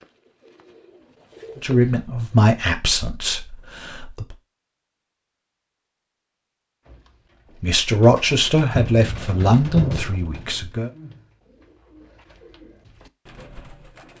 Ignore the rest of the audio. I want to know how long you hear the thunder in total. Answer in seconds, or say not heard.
2 s.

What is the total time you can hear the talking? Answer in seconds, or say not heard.
6 s.